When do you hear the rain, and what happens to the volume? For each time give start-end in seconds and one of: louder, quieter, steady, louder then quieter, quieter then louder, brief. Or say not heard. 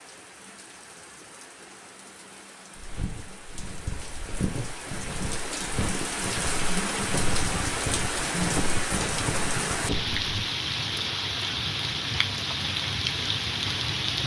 0.0-14.2 louder.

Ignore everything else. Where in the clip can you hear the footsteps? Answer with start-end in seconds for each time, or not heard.
2.8-10.2.